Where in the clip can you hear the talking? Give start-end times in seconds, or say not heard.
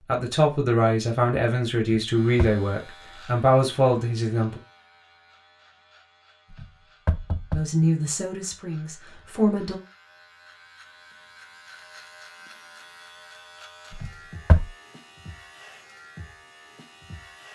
0.1-4.6, 7.5-9.8.